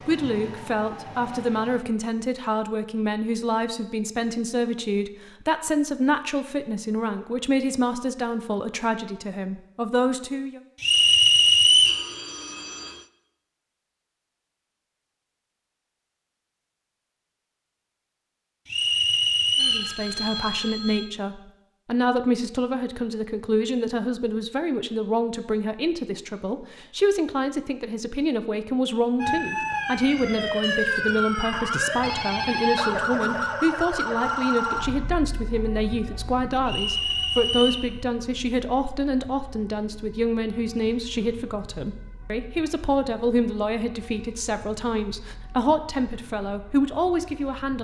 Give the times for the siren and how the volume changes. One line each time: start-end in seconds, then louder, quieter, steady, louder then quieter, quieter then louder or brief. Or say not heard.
0.0-1.8 brief
29.2-47.7 quieter.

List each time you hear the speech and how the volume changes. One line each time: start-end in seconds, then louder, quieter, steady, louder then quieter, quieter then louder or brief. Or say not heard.
0.1-10.6 steady
19.6-47.7 steady.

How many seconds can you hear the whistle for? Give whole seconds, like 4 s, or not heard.
4 s.